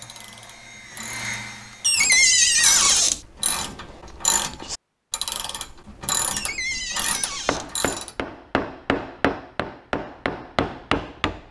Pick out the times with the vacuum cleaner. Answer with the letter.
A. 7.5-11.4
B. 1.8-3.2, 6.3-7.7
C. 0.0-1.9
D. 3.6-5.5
C.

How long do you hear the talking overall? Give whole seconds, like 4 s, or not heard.
not heard.